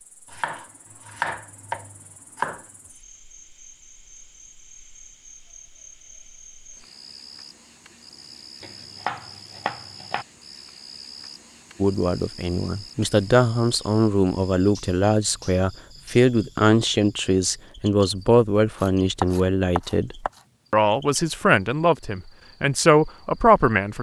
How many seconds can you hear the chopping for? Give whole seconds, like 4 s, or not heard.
6 s.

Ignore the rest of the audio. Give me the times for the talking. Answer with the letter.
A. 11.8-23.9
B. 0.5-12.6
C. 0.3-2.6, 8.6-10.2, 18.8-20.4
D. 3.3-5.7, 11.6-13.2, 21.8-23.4
A.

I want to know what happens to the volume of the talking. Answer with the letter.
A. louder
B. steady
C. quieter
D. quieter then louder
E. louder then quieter
B.